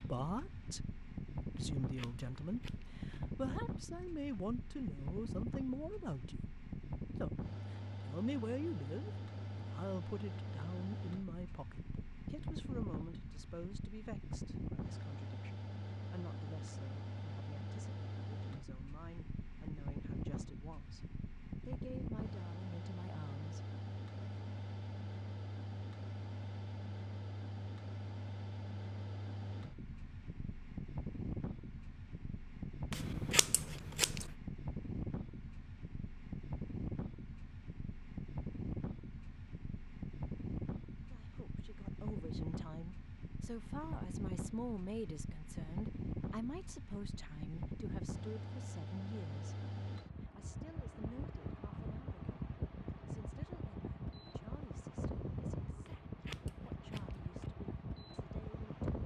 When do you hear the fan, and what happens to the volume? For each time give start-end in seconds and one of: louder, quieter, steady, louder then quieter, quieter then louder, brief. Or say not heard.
0.0-59.0 steady.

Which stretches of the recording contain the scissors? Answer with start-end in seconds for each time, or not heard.
1.6-3.1, 32.9-34.3, 55.9-57.5.